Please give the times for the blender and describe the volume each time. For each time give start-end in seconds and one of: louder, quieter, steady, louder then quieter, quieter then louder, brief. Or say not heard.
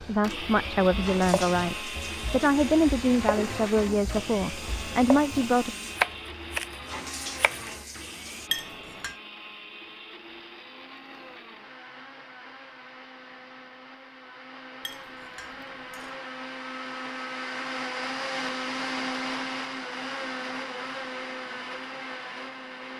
0.1-22.9 quieter then louder.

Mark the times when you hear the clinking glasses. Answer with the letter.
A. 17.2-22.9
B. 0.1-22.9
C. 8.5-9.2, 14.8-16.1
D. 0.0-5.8
C.